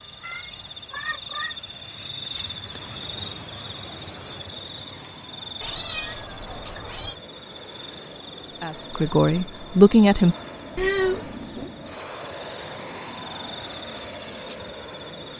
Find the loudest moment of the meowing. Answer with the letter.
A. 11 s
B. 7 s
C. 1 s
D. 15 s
A.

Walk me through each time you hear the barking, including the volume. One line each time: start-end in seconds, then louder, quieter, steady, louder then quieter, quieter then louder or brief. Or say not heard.
not heard.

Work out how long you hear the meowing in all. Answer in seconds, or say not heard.
4 s.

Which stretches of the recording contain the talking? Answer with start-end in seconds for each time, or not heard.
8.5-10.3.